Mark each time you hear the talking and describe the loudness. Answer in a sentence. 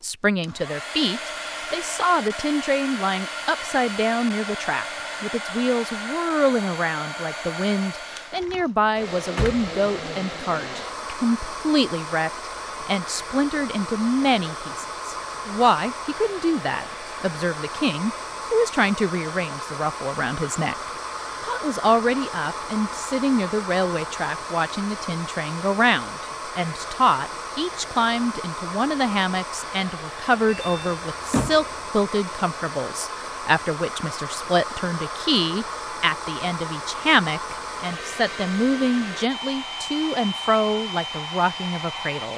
The talking can be heard from 0.0 to 20.8 s, at a steady volume; and from 21.4 to 42.3 s, at a steady volume.